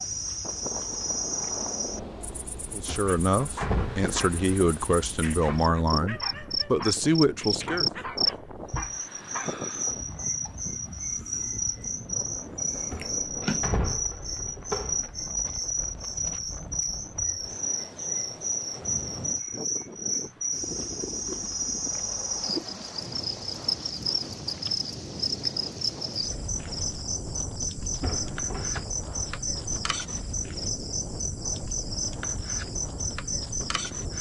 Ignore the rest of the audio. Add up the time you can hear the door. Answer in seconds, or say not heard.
4 s.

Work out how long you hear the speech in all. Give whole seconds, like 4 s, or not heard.
5 s.